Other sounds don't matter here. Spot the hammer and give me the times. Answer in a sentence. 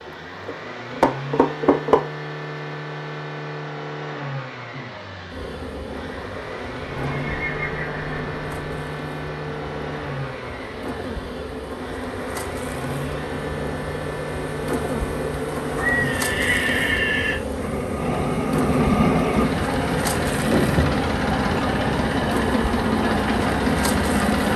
The hammer can't be heard in this clip.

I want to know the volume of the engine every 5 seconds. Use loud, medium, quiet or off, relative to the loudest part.
medium, medium, medium, loud, loud.